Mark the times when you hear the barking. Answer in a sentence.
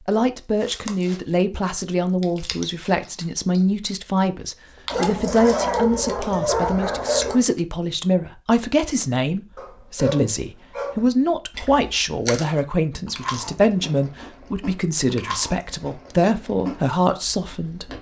The barking can be heard from 4.8 to 7.4 s and from 9.6 to 11.0 s.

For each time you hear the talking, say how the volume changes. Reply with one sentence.
You can hear the talking from 0.0 to 17.9 s, at a steady volume.